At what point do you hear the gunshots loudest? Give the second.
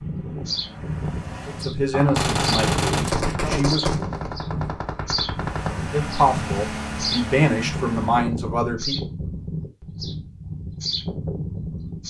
3 s.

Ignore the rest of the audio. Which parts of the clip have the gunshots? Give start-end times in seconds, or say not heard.
1.9-5.8.